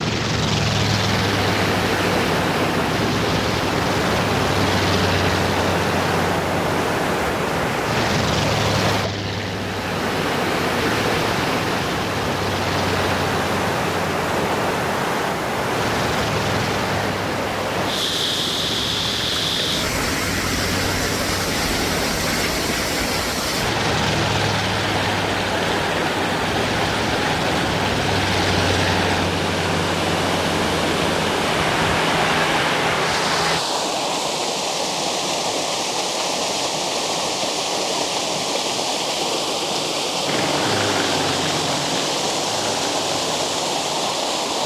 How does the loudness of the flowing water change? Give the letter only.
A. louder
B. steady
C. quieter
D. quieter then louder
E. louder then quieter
B.